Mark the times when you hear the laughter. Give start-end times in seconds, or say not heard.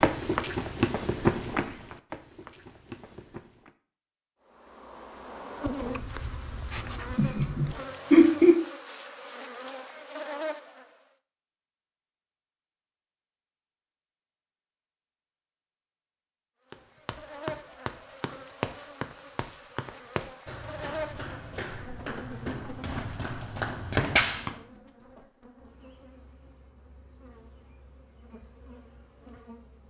7.2-8.6.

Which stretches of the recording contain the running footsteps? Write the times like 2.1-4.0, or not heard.
0.0-3.8, 16.7-24.6.